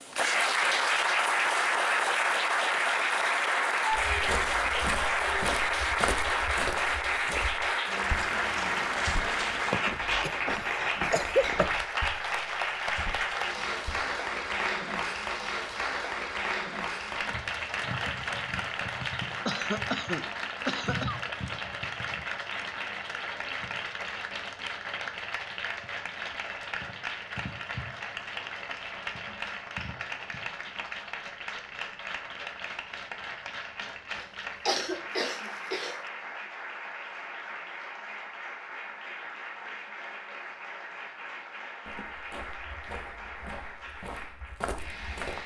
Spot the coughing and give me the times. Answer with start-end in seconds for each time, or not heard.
9.7-11.7, 19.4-21.2, 34.1-36.0.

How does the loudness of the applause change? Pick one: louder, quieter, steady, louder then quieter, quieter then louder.
quieter.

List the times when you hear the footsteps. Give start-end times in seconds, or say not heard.
3.9-14.1, 41.9-45.4.